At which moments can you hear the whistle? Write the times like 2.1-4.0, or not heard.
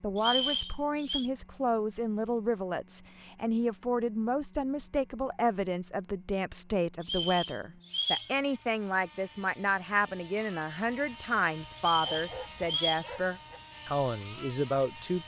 0.1-1.3, 7.0-8.3, 11.8-13.1.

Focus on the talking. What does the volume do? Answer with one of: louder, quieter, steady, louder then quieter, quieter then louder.
steady.